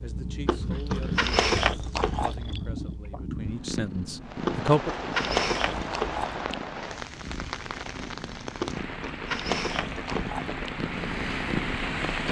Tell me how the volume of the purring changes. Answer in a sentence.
The loudness of the purring goes down, then up.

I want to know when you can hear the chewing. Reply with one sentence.
You can hear the chewing from 0.5 to 2.6 s, from 4.5 to 6.5 s and from 8.6 to 10.6 s.